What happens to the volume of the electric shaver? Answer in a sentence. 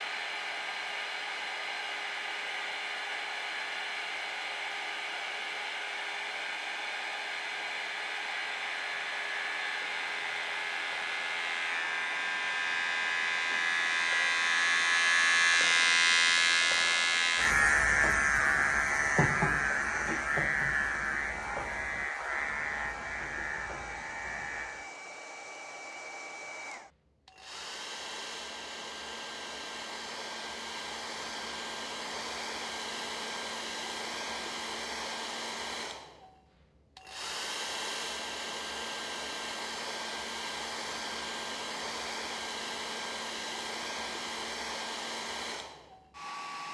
The loudness of the electric shaver goes up, then down.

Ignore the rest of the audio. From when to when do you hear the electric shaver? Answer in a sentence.
The electric shaver can be heard from 0.0 to 24.9 s.